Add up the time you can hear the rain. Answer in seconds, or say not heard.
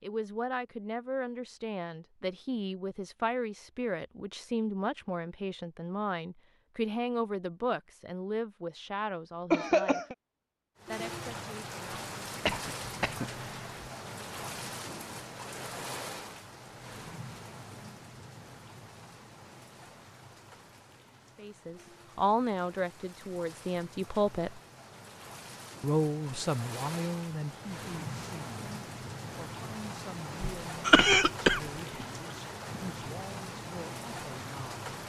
24 s.